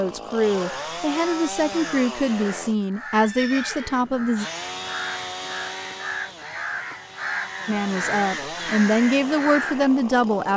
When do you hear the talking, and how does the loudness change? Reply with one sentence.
The talking can be heard from 0.0 to 4.5 s, at a steady volume; and briefly from 7.7 to 10.5 s.